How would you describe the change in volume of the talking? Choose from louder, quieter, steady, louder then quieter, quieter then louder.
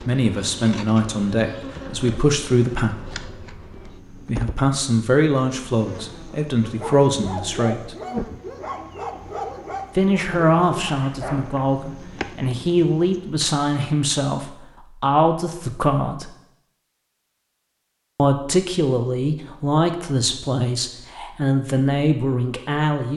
steady.